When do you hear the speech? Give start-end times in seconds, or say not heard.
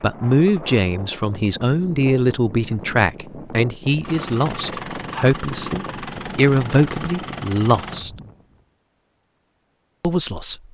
0.0-8.1, 10.0-10.6.